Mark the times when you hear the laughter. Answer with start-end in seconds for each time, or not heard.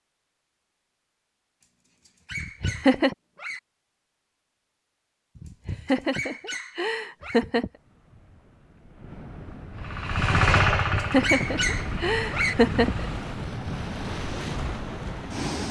2.3-3.1, 5.3-7.7, 10.8-13.1.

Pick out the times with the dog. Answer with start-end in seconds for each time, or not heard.
2.0-3.6, 5.8-7.4, 11.0-12.6.